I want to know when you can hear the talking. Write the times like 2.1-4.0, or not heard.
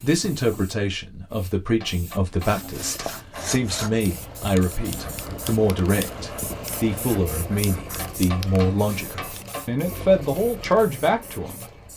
0.0-11.7.